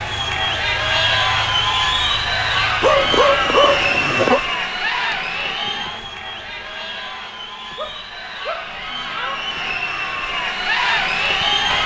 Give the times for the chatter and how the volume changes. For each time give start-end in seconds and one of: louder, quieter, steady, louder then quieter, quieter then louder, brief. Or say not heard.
0.0-11.8 quieter then louder.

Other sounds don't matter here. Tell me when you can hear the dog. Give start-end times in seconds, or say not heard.
2.8-4.4, 7.8-9.3.